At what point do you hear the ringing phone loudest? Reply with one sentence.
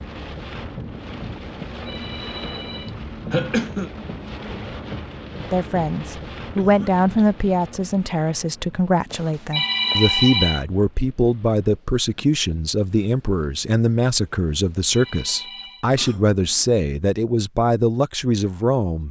The volume of the ringing phone peaks at 10 seconds.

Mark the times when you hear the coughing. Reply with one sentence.
You can hear the coughing from 3.3 to 3.9 s, from 6.5 to 7.3 s and from 15.9 to 16.6 s.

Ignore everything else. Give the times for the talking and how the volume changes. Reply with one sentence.
You can hear the talking from 5.5 to 19.0 s, at a steady volume.